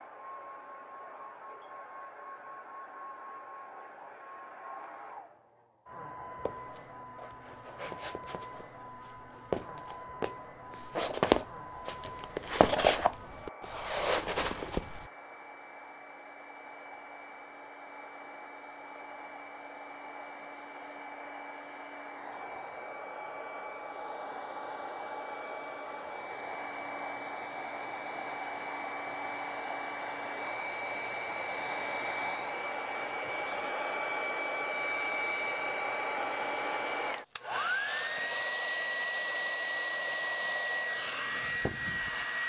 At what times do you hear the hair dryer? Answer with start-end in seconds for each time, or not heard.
0.0-42.4.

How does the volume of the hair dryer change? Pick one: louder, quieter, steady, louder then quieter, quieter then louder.
louder.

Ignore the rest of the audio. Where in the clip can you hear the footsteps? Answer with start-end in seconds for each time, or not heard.
6.5-15.1.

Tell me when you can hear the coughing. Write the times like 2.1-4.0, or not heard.
not heard.